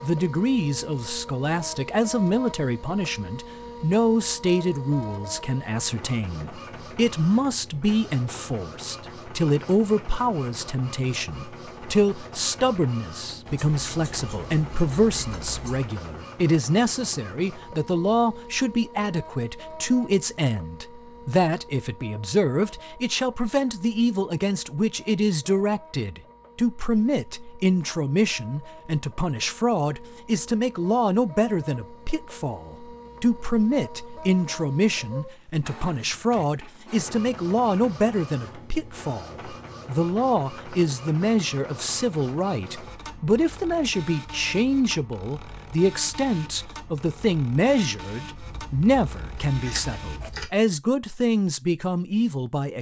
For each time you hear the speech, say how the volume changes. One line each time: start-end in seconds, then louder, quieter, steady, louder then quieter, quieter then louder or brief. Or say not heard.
0.0-52.7 steady.